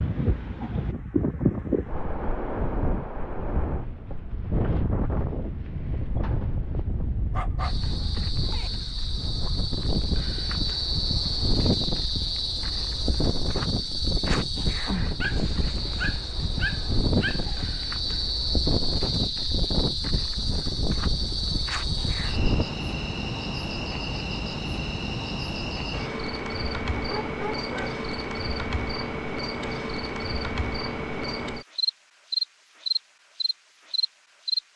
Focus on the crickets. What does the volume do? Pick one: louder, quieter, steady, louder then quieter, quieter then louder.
steady.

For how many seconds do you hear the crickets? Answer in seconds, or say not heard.
27 s.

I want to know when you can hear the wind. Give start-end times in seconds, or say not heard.
0.0-22.6.